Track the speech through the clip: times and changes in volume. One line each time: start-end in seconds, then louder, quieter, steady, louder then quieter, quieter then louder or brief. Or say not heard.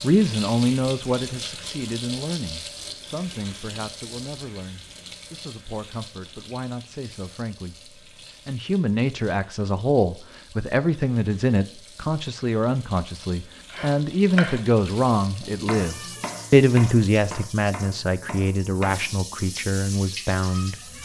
0.0-21.0 quieter then louder.